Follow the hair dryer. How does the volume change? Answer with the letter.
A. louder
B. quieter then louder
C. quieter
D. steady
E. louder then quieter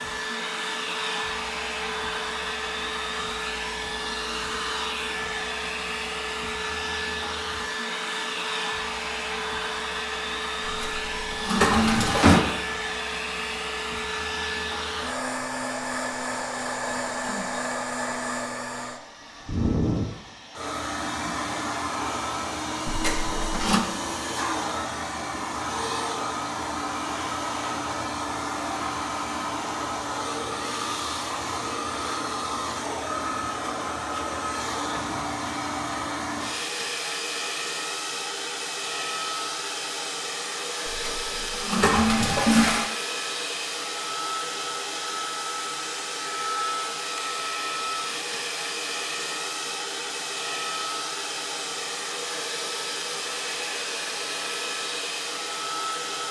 D.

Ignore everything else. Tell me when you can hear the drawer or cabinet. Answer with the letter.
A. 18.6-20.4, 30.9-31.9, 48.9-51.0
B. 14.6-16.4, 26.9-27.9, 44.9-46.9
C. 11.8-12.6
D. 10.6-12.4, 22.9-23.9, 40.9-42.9
C.